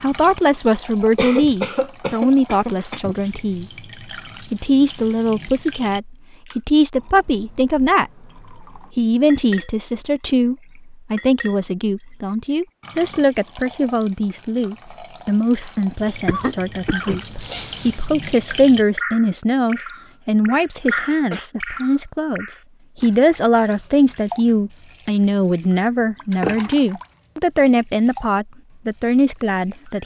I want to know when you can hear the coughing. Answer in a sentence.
The coughing can be heard from 1.1 to 3.1 s, from 16.2 to 18.0 s and from 20.8 to 21.5 s.